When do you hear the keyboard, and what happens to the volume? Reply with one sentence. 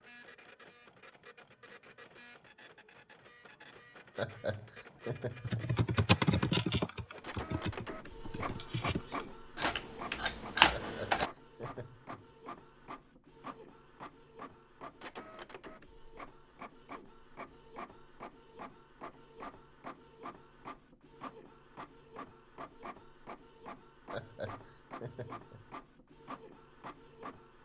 The keyboard can be heard from 5.5 to 11.3 s, getting quieter then louder.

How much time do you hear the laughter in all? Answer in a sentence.
You can hear the laughter for 5 seconds altogether.